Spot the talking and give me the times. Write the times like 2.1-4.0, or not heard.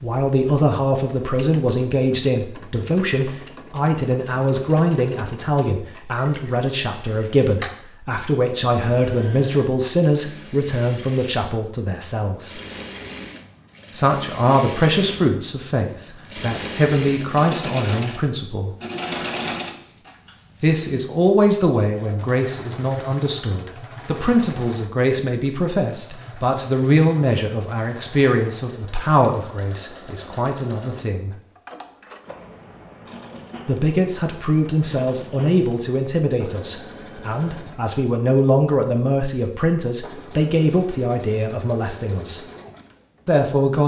0.0-12.6, 13.9-18.7, 20.6-31.4, 33.6-42.4, 43.2-43.8.